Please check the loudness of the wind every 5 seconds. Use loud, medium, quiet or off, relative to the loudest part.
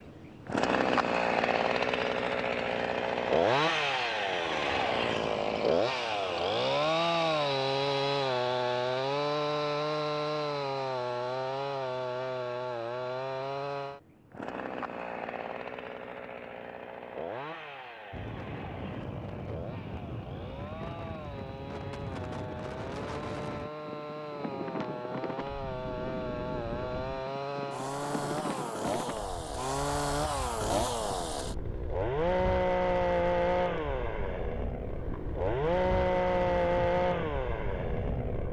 off, off, off, loud, loud, loud, medium, loud.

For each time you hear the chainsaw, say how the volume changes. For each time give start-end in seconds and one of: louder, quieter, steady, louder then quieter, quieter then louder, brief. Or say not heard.
0.0-38.4 quieter then louder.